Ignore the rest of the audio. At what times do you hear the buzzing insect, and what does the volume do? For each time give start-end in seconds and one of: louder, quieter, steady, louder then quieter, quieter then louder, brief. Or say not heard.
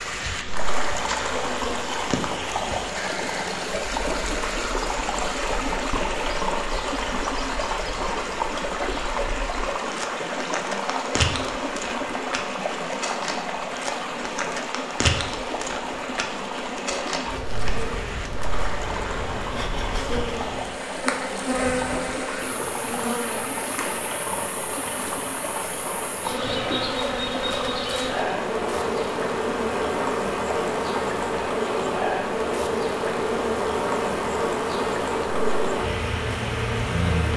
0.0-37.3 louder.